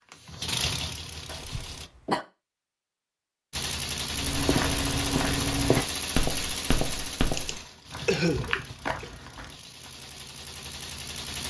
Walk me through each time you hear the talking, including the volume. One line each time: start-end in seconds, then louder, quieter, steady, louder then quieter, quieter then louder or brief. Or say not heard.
not heard.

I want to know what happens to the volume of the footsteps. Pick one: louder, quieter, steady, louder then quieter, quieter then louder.
quieter then louder.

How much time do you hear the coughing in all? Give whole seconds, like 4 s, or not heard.
3 s.